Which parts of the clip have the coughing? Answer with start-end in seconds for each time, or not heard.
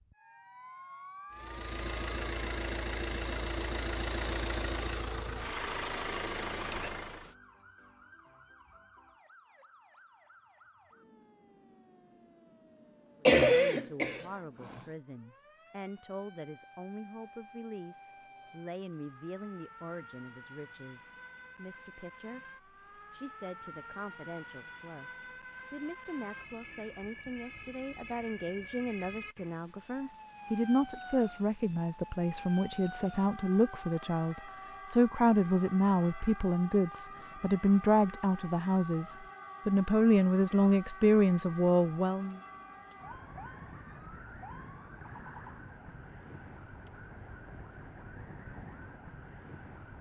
13.2-14.8.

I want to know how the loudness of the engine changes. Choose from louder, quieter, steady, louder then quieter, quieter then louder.
louder.